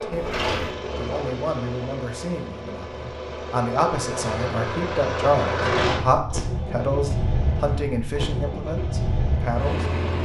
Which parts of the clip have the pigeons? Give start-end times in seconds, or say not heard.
not heard.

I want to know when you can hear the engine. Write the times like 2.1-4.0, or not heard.
0.0-10.2.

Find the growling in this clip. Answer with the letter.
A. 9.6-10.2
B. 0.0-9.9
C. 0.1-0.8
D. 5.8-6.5
C.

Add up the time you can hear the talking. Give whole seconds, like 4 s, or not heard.
10 s.